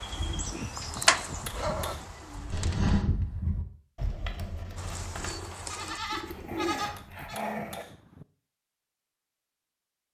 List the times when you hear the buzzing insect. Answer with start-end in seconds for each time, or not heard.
not heard.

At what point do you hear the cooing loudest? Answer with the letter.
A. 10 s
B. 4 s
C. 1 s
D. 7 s
C.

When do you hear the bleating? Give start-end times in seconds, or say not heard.
0.0-7.3.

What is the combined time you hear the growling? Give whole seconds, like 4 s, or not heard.
2 s.